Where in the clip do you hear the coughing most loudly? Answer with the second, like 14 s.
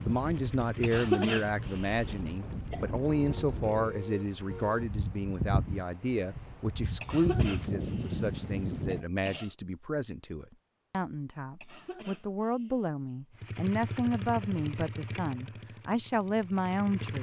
1 s.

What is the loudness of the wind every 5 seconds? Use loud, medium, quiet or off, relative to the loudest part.
medium, loud, off, off.